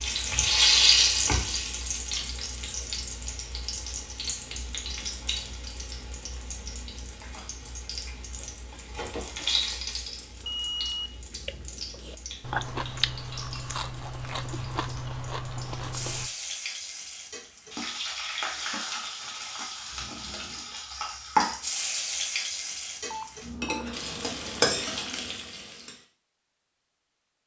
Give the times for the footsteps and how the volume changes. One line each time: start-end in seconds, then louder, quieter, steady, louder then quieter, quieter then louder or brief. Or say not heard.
not heard.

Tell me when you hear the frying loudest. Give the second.
1 s.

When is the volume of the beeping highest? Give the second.
11 s.